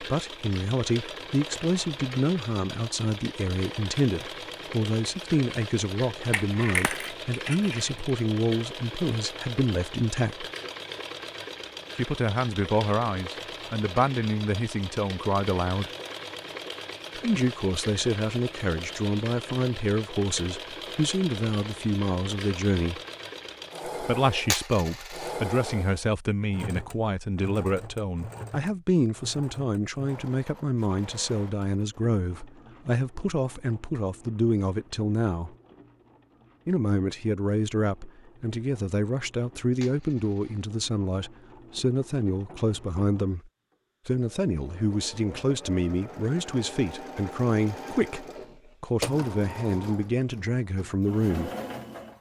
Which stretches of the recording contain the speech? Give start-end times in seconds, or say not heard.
0.0-10.5, 11.9-15.9, 17.1-23.0, 24.0-35.5, 36.6-51.5.